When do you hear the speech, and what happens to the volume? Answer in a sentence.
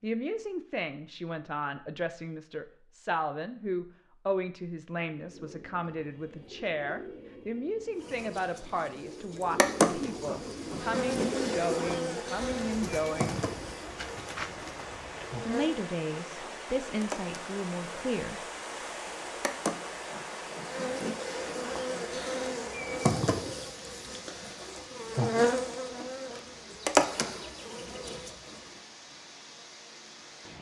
The speech can be heard from 0.0 to 13.4 s, at a steady volume; and briefly from 15.4 to 18.4 s.